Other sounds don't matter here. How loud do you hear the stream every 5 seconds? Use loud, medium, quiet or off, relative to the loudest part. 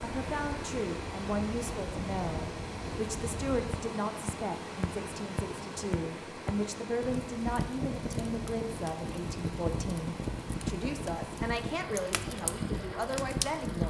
loud, loud, medium.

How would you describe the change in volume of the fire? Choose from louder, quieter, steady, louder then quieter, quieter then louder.
louder.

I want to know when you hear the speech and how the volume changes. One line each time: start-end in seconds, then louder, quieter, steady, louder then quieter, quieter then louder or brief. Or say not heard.
0.0-13.8 steady.